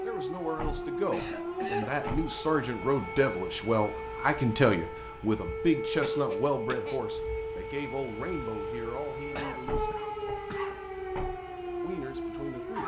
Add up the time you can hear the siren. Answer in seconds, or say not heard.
13 s.